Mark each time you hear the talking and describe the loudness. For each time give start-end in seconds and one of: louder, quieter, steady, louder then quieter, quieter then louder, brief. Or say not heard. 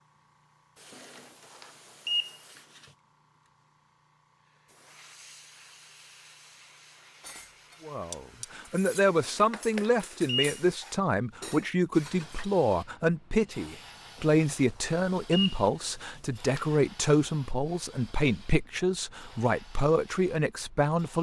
7.8-21.1 steady.